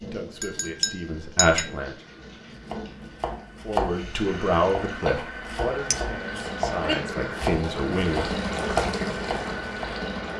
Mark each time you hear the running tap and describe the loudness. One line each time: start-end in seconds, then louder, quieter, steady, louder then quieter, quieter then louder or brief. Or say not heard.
0.0-10.3 louder.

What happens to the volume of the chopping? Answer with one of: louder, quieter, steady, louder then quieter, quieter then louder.
quieter then louder.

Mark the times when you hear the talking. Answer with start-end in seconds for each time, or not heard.
0.0-1.9, 3.6-8.3.